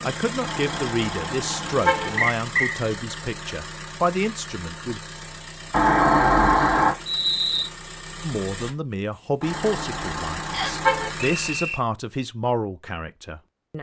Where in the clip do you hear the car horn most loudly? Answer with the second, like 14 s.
6 s.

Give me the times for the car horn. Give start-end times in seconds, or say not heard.
0.4-2.3, 5.7-7.0, 9.4-11.1.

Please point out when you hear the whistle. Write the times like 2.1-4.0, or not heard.
2.1-2.8, 7.0-7.7, 10.5-11.8.